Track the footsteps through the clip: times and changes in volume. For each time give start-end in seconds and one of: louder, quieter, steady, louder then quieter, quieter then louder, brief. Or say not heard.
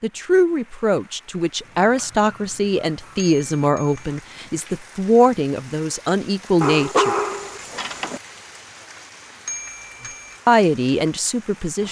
not heard.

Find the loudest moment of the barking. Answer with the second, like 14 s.
7 s.